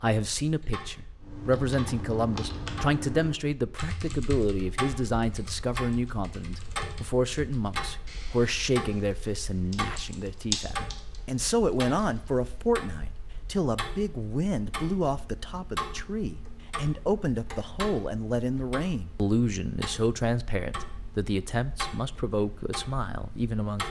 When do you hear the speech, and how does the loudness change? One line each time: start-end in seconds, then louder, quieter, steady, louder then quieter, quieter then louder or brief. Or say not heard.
0.0-23.8 steady.